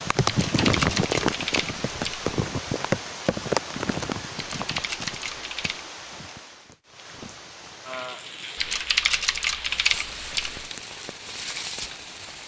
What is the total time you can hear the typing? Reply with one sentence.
You can hear the typing for 6 seconds altogether.